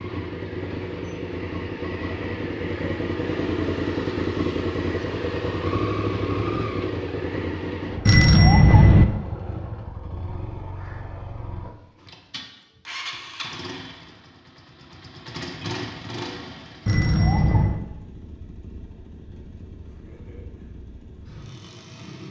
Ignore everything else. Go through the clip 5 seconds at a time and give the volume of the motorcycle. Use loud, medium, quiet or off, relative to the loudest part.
loud, loud, medium, medium, quiet.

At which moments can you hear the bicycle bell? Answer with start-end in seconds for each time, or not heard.
8.1-9.1, 16.9-17.9.